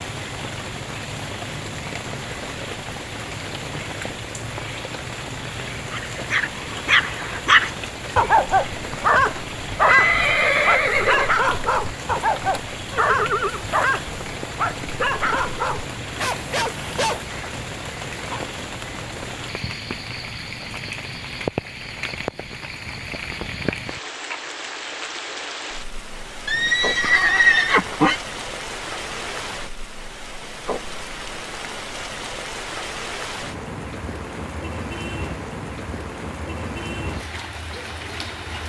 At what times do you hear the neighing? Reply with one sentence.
You can hear the neighing from 9.8 to 11.3 s, from 12.9 to 13.7 s and from 26.4 to 28.2 s.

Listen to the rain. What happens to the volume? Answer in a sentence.
The volume of the rain stays about the same.